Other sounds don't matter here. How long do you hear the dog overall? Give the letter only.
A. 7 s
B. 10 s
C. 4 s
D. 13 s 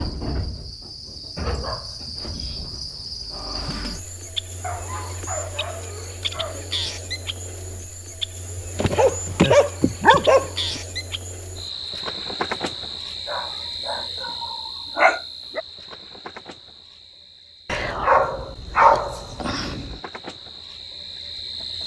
B.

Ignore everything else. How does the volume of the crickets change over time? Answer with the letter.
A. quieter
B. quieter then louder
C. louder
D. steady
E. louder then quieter
A.